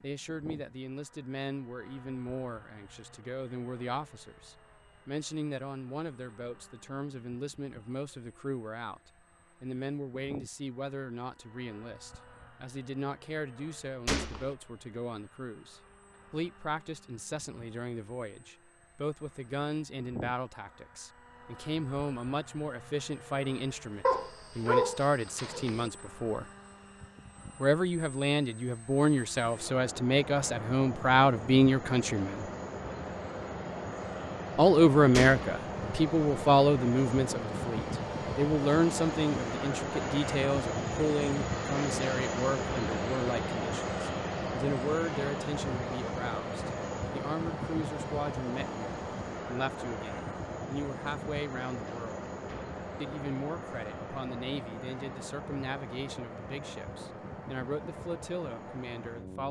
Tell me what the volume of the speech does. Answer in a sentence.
The loudness of the speech goes up, then down.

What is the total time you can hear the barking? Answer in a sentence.
The barking can be heard for 2 seconds in total.